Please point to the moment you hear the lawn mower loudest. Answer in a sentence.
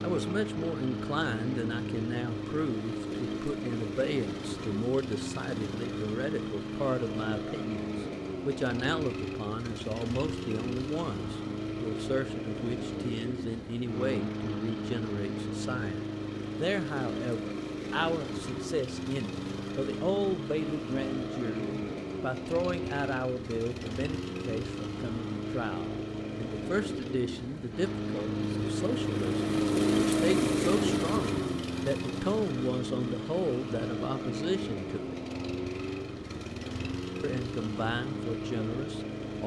The loudest moment of the lawn mower is at 30 seconds.